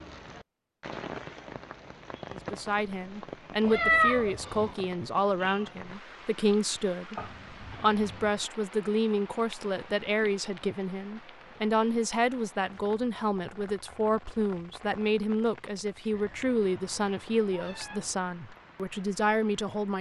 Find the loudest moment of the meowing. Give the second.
4 s.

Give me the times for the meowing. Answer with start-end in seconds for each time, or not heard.
3.6-4.8, 7.2-8.4, 16.1-18.1.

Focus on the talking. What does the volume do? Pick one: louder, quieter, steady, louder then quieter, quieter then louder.
steady.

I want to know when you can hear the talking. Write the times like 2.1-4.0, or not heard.
2.3-19.9.